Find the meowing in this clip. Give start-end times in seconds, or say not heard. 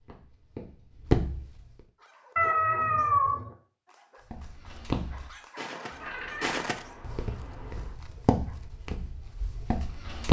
2.4-3.5, 5.9-8.0.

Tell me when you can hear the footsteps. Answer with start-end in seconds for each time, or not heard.
0.0-1.6, 4.3-10.2.